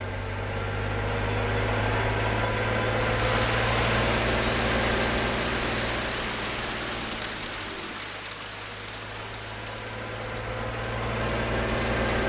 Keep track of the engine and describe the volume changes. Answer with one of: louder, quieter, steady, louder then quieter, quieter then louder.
quieter then louder.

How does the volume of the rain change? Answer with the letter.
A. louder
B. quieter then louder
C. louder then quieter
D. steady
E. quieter
E.